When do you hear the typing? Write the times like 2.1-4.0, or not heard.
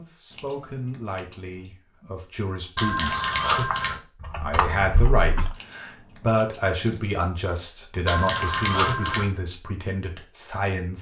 2.9-5.5.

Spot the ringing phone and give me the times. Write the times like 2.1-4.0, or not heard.
2.8-4.0, 8.1-9.3.